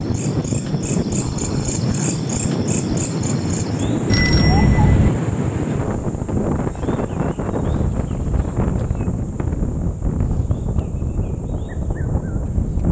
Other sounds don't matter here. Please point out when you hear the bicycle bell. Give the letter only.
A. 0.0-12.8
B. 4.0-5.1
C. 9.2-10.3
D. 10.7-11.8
B.